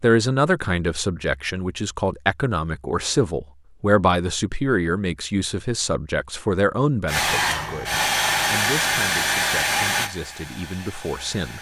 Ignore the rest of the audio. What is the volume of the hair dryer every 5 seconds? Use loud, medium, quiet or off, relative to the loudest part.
off, loud, quiet.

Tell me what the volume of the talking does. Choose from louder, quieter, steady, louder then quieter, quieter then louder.
quieter.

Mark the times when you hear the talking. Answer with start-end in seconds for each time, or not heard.
0.0-11.5.